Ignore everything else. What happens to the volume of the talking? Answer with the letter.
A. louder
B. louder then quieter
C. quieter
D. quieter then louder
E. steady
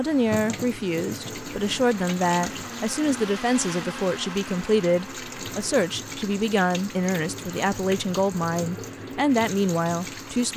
E.